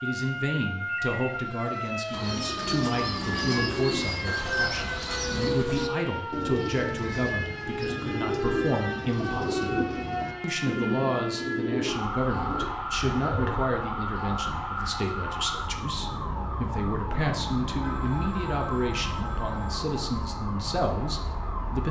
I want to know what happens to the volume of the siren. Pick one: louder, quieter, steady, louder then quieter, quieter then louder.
steady.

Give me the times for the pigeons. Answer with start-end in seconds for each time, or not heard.
2.1-13.7.